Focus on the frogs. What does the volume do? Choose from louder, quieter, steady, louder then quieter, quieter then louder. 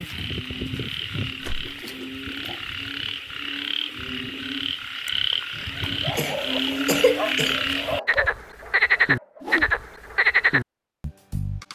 louder.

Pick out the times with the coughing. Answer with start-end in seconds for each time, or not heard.
6.2-7.6.